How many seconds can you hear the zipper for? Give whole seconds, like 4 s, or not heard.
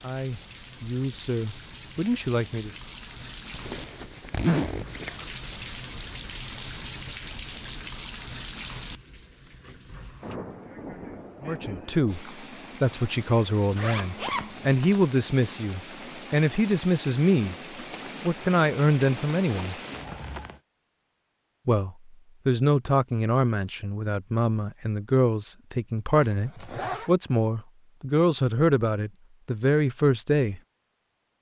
4 s.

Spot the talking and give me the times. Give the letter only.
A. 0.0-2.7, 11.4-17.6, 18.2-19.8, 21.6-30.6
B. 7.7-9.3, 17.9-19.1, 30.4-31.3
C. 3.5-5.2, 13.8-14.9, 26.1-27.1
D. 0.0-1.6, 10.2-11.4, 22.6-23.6
A.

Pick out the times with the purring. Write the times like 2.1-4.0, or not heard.
not heard.